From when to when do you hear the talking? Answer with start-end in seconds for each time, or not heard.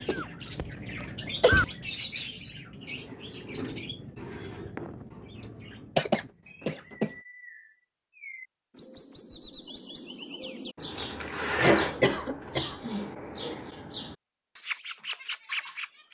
not heard.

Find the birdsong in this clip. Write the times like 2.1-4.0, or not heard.
0.0-16.1.